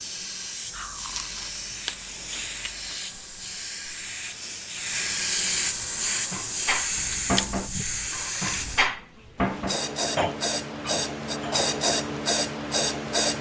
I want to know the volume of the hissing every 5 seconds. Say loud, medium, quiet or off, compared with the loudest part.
medium, loud, loud.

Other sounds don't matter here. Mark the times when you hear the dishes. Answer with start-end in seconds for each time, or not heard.
6.0-11.7.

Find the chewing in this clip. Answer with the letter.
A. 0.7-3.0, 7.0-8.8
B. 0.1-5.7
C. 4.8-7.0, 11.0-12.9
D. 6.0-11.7
A.